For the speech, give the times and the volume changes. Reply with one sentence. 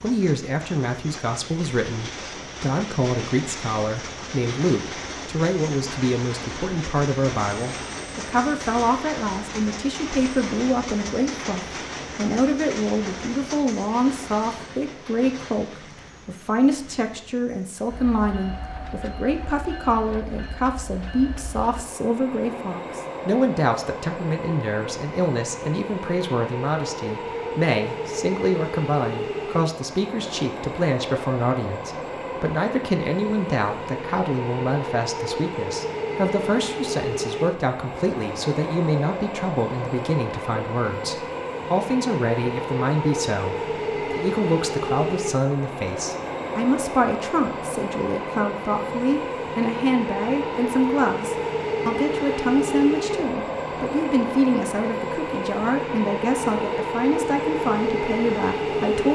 You can hear the speech from 0.0 to 59.1 s, at a steady volume.